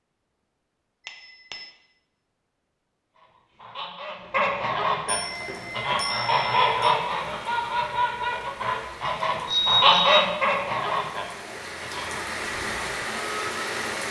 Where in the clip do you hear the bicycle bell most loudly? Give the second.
10 s.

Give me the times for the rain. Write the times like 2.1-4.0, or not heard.
5.2-14.0.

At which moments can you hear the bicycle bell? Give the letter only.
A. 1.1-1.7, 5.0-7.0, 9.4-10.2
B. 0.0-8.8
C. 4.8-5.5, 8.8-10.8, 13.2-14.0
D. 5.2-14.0
A.